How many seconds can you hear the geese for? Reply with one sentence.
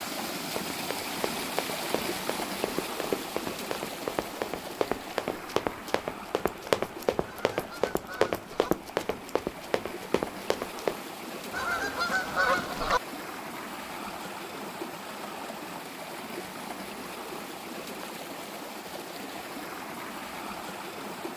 You can hear the geese for 3 seconds altogether.